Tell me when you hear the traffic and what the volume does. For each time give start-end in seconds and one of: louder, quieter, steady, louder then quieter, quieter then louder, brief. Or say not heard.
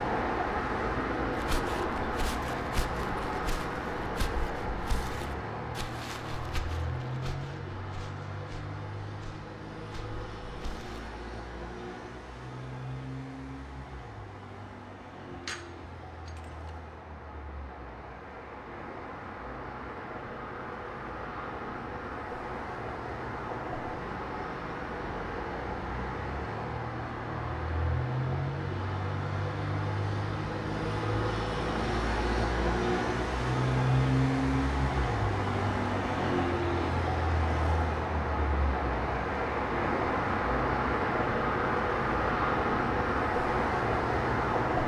0.0-44.8 quieter then louder.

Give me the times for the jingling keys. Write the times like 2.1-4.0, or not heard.
15.3-16.8.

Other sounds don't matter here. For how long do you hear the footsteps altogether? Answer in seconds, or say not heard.
10 s.